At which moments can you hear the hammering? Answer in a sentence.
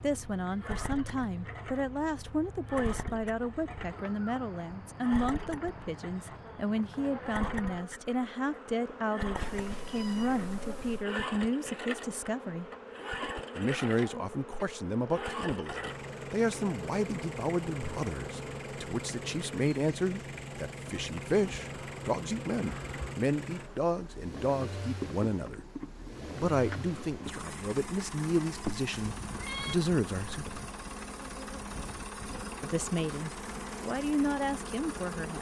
The hammering can't be heard in this clip.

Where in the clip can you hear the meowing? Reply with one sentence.
You can hear the meowing from 9.3 to 11.1 s and from 28.9 to 29.8 s.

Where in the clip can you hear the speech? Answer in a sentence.
The speech can be heard from 0.0 to 12.7 s, from 13.6 to 25.6 s, from 26.3 to 30.6 s and from 32.6 to 35.3 s.